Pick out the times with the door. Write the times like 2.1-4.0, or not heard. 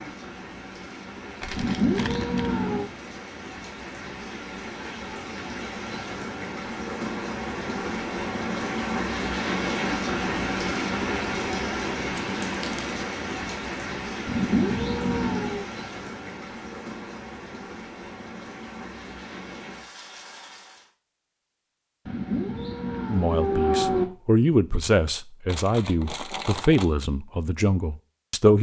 not heard.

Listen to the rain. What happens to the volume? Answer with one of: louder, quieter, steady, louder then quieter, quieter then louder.
louder then quieter.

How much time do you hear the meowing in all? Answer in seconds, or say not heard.
5 s.